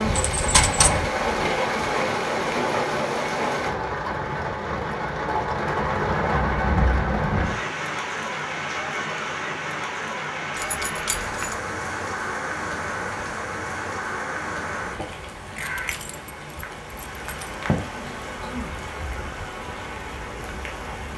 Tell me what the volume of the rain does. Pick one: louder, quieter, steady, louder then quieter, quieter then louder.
quieter.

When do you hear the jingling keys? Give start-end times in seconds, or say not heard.
0.1-0.9, 10.6-11.6, 15.6-17.6.